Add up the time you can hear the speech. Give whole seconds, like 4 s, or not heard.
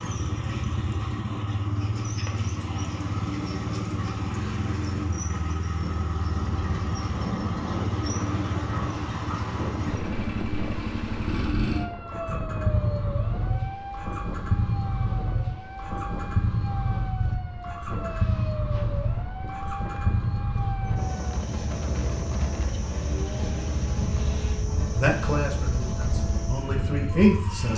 3 s.